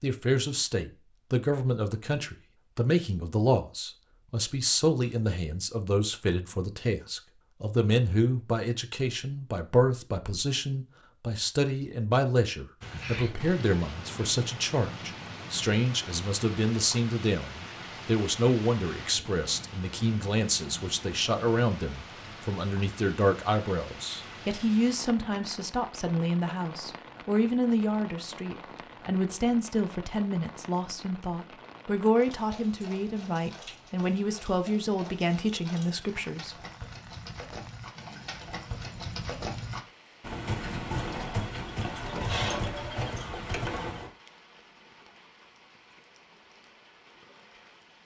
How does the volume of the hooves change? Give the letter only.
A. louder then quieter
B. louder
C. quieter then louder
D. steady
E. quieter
B.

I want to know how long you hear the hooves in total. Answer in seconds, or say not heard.
12 s.